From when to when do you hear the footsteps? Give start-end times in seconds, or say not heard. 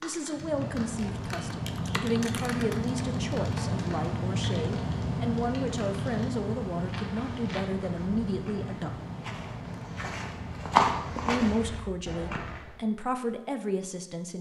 6.8-12.8.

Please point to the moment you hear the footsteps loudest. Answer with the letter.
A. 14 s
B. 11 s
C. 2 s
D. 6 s
B.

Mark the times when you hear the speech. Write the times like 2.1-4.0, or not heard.
0.0-9.0, 11.2-14.3.